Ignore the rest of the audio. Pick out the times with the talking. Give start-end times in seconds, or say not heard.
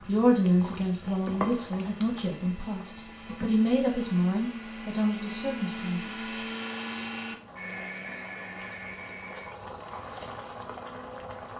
0.1-6.3.